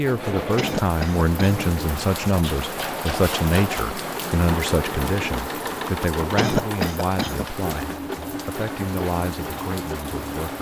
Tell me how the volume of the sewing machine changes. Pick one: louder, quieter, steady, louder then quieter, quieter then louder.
steady.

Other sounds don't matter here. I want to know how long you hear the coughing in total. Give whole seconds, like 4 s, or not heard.
2 s.